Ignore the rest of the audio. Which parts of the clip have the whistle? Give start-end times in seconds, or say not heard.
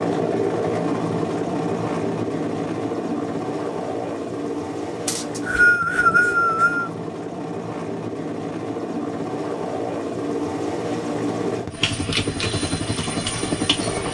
5.0-6.9.